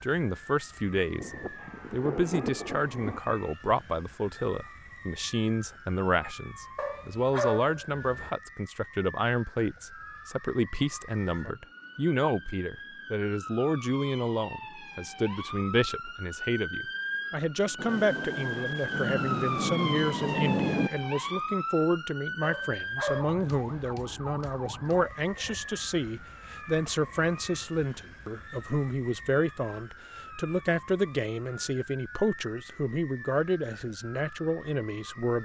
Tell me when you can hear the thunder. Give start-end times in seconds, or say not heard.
1.2-3.2, 17.8-20.9.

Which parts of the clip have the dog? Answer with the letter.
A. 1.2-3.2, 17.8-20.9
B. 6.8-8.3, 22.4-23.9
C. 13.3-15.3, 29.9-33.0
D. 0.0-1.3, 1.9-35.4
B.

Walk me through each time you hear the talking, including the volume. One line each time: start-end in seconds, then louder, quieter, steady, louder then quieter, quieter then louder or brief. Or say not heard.
0.0-1.3 brief
1.9-35.4 steady.